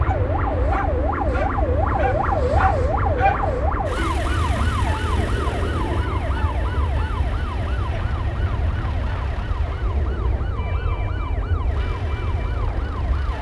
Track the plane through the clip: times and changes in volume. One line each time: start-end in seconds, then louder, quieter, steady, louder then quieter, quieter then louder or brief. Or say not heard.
0.0-13.3 steady.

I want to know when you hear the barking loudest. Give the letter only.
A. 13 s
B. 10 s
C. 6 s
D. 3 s
D.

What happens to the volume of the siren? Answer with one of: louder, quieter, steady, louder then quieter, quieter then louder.
quieter.